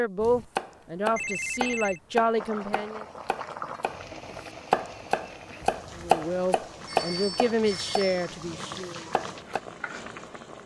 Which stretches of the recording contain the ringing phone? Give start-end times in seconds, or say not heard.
1.1-2.0, 6.8-8.2.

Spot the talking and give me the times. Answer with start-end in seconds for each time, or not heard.
0.0-3.0, 6.0-9.0.